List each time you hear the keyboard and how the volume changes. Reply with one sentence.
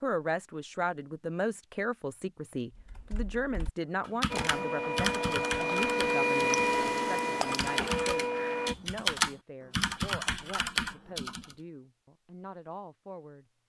You can hear the keyboard from 2.8 to 11.6 s, getting louder.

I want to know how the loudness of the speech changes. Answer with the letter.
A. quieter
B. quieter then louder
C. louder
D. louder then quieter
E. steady
A.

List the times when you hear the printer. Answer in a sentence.
The printer can be heard from 4.3 to 8.8 s.